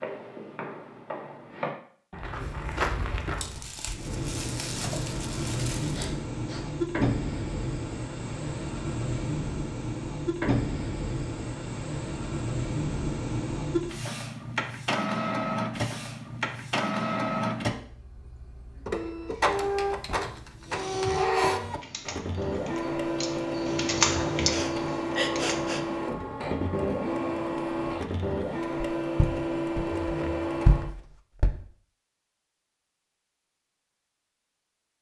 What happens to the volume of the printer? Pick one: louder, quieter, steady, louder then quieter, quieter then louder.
steady.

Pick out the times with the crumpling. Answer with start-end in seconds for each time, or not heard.
3.4-6.1.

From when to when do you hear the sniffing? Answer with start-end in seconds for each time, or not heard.
5.9-6.8, 20.6-21.5, 24.5-25.9.